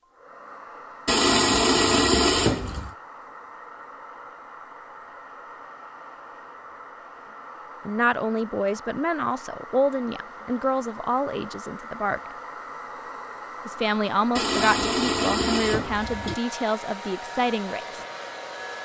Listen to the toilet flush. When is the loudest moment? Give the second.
2 s.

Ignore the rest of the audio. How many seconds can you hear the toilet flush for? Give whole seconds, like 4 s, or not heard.
4 s.